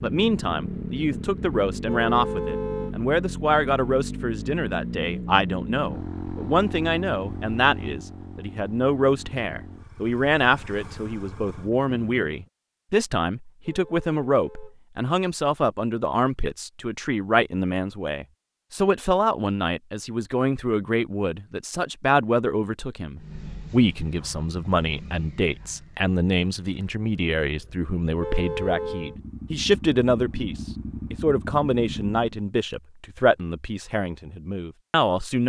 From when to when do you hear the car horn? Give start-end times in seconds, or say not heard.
1.9-3.0, 13.6-14.8, 28.1-29.1.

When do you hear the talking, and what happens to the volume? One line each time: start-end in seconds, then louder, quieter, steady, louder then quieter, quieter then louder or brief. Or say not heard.
0.0-35.4 steady.